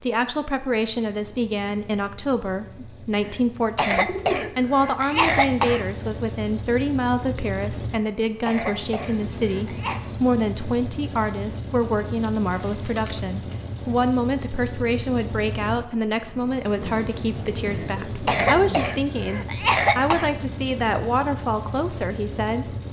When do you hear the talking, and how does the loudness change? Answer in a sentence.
The talking can be heard from 0.0 to 22.8 s, at a steady volume.